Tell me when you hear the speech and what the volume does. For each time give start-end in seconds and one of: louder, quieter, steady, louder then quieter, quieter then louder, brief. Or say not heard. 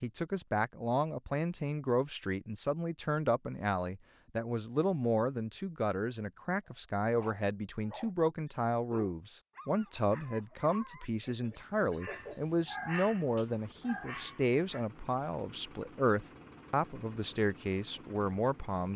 0.0-18.9 steady.